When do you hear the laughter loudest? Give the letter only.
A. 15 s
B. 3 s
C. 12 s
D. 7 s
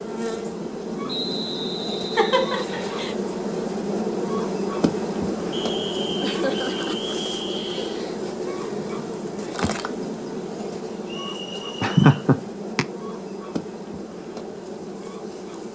C.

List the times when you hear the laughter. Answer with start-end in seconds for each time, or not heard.
2.1-3.1, 6.2-7.0, 11.8-12.8.